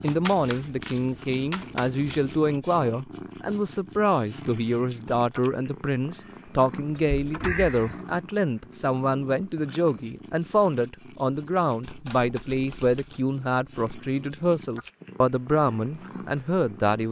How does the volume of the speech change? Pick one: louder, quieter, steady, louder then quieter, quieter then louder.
steady.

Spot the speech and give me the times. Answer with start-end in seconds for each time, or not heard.
0.0-17.0.